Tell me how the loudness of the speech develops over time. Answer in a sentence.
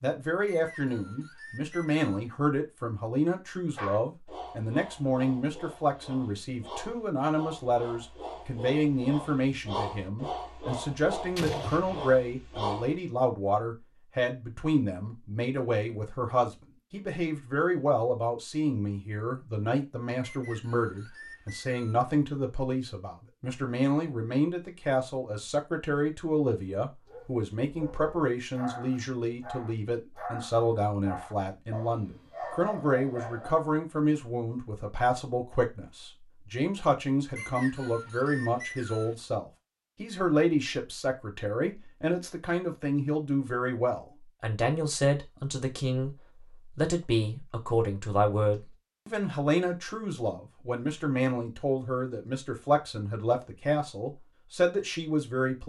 The loudness of the speech stays about the same.